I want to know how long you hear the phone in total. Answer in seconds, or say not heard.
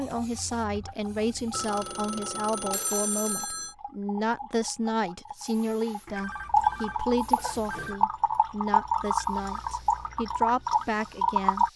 4 s.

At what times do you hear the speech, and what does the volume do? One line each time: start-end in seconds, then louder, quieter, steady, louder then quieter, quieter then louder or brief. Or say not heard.
0.0-11.7 steady.